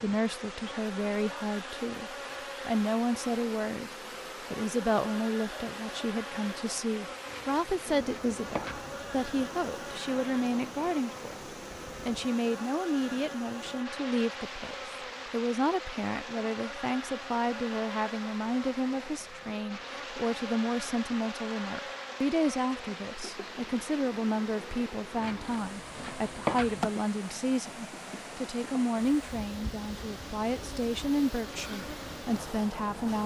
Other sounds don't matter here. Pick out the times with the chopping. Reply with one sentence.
You can hear the chopping from 7.2 to 9.0 s and from 25.1 to 26.9 s.